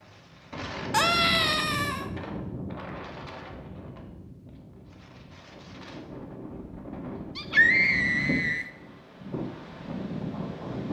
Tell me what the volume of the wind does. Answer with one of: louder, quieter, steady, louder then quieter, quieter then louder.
quieter then louder.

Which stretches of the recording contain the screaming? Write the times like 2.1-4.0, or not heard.
0.9-2.0, 7.3-8.7.